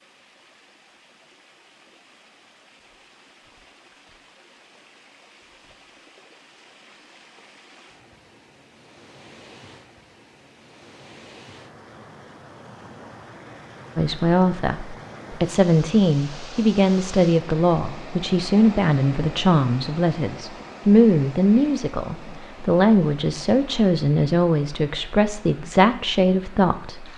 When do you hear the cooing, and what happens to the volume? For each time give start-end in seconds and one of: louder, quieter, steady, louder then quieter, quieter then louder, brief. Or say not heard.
not heard.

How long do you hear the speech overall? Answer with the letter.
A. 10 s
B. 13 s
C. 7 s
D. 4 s
B.